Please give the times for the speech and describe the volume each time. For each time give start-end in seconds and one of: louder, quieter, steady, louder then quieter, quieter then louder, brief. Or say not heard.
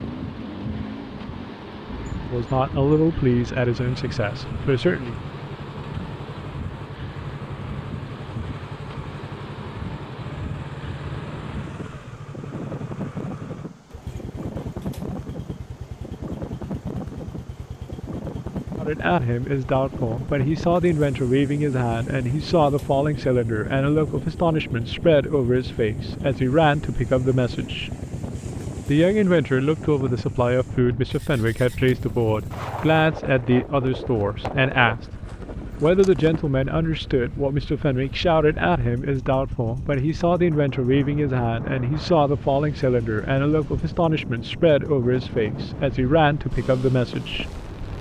2.3-5.2 brief
18.8-27.9 steady
28.9-35.0 steady
35.8-47.5 steady.